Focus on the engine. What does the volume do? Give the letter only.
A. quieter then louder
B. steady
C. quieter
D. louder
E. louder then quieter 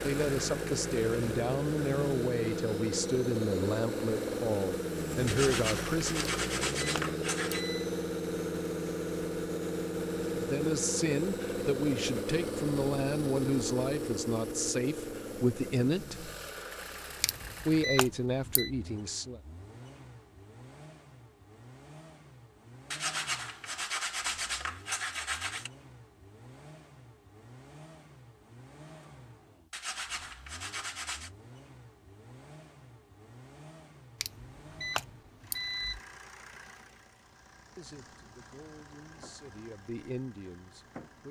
C.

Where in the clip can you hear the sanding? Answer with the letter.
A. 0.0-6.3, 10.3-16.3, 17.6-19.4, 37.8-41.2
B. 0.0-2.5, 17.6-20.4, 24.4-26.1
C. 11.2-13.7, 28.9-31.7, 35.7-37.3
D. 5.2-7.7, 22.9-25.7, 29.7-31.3
D.